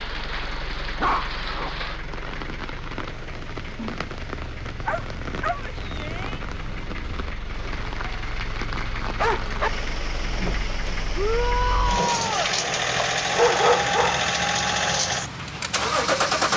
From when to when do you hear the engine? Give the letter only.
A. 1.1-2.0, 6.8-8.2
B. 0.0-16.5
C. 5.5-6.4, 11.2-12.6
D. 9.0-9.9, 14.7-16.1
B.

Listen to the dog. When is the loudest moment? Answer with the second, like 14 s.
14 s.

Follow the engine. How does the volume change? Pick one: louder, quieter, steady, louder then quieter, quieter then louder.
louder.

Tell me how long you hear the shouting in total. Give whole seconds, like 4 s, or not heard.
2 s.